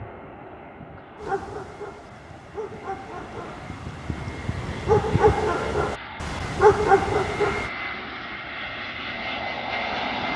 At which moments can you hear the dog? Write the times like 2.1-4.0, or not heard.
1.2-7.7.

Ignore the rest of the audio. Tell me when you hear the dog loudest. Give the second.
7 s.